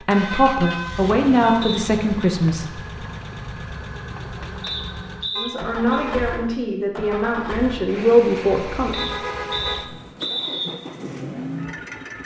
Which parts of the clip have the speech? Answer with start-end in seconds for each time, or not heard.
0.0-2.9, 5.3-9.2.